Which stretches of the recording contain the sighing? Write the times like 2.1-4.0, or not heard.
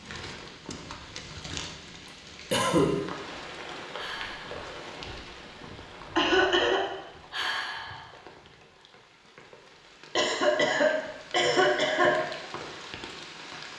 4.0-4.6, 7.3-8.2.